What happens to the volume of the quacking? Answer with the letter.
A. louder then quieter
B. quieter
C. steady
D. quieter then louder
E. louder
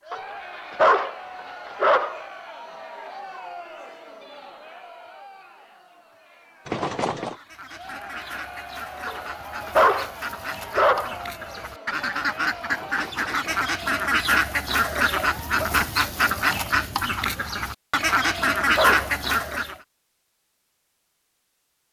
E.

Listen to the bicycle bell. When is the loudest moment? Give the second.
7 s.